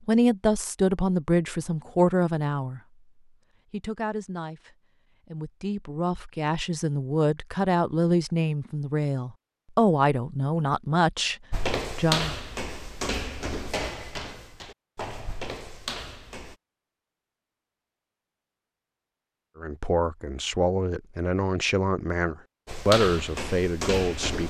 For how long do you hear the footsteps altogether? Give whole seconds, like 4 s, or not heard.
7 s.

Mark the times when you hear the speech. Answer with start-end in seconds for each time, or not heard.
0.1-2.8, 3.7-11.3, 11.9-12.3, 19.6-24.4.